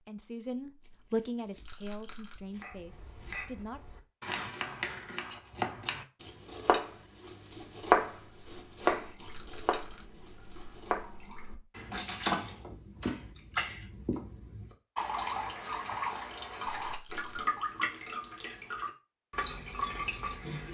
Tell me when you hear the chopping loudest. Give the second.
8 s.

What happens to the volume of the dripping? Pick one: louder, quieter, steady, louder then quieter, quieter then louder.
louder.